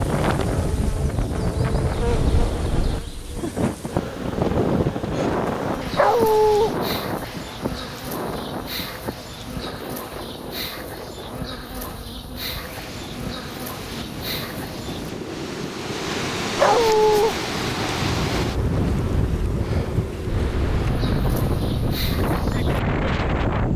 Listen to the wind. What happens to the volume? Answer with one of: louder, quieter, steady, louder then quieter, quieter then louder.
quieter then louder.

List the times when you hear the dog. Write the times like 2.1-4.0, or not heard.
6.0-6.7, 16.6-17.4.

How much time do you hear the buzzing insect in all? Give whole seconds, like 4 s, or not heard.
24 s.